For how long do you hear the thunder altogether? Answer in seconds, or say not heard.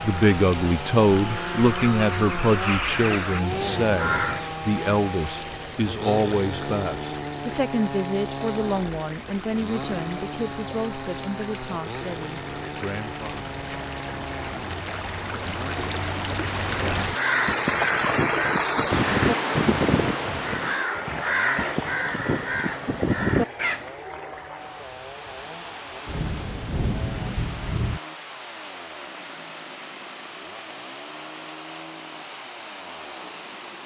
2 s.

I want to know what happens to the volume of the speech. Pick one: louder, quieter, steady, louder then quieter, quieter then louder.
quieter.